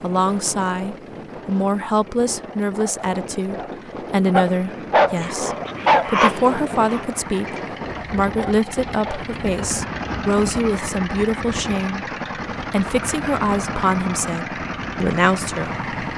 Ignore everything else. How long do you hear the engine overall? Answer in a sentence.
You can hear the engine for 16 seconds altogether.